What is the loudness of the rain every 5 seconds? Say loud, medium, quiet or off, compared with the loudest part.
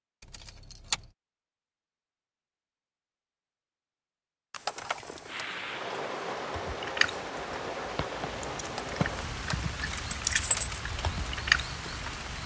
off, loud, loud.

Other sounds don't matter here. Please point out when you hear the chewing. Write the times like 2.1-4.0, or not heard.
6.5-12.2.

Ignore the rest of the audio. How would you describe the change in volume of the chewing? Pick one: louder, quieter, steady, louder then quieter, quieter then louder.
quieter then louder.